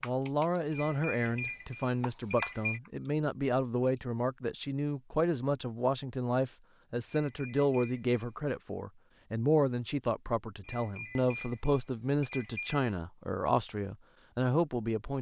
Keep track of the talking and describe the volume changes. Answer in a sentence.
The loudness of the talking stays about the same.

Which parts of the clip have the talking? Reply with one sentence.
You can hear the talking from 0.0 to 15.1 s.